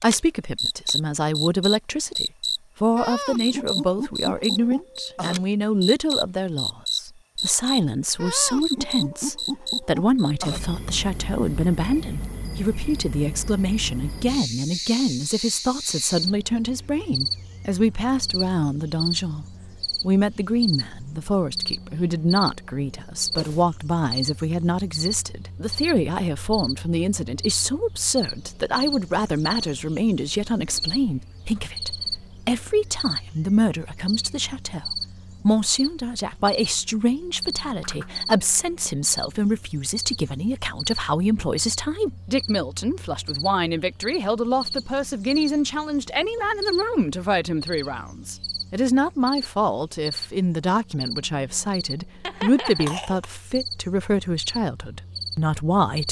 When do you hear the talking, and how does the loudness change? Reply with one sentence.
You can hear the talking from 0.0 to 56.0 s, at a steady volume.